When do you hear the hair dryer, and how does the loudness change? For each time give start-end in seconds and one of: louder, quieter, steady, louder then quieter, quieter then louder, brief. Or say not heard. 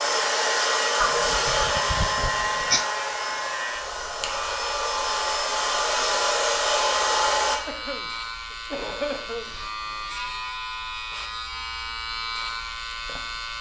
0.0-7.6 quieter then louder.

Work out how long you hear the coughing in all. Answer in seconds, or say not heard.
4 s.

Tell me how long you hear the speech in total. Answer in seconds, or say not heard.
not heard.